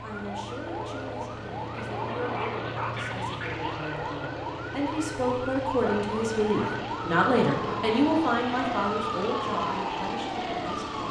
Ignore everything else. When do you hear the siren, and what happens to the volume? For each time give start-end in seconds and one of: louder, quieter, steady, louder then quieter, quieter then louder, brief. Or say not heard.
0.0-11.0 louder.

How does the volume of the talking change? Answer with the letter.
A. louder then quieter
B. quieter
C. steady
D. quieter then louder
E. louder
A.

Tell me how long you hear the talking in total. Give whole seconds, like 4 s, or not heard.
11 s.